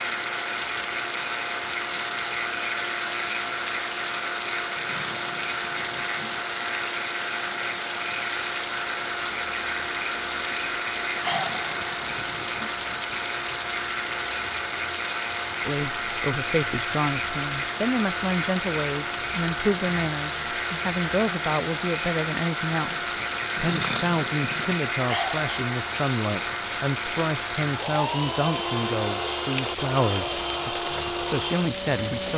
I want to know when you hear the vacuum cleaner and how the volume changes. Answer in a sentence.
The vacuum cleaner can be heard from 0.0 to 32.3 s, at a steady volume.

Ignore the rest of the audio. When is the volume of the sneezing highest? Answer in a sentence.
The volume of the sneezing peaks at 24 seconds.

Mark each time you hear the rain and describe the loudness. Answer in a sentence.
The rain can be heard from 0.0 to 32.3 s, at a steady volume.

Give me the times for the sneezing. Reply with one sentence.
The sneezing can be heard from 4.8 to 6.4 s, from 11.2 to 12.8 s and from 23.6 to 24.8 s.